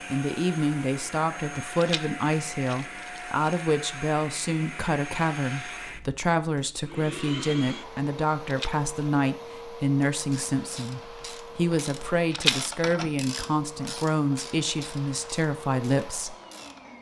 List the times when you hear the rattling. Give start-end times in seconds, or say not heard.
1.8-3.5, 8.4-9.1, 12.3-12.9.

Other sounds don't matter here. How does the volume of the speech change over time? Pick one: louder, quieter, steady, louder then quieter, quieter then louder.
steady.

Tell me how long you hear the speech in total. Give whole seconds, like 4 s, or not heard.
16 s.